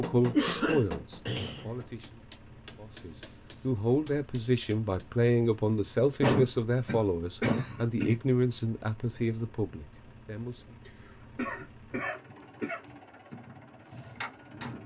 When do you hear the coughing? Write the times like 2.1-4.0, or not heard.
0.3-1.7, 6.2-8.2, 10.8-12.8.